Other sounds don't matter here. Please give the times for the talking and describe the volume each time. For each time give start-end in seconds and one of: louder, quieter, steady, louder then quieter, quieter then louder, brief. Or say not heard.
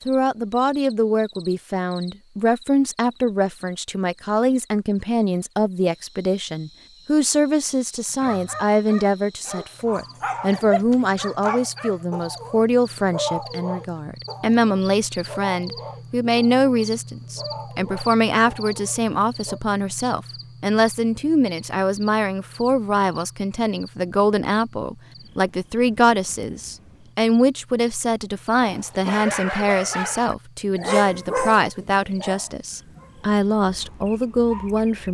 0.1-35.0 steady.